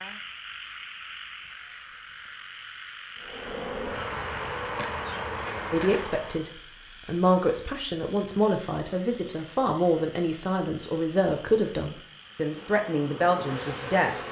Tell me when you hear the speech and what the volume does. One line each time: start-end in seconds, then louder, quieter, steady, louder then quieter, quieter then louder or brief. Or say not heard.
5.7-14.2 steady.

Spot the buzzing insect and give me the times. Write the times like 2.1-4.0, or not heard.
3.2-6.5, 12.4-14.2.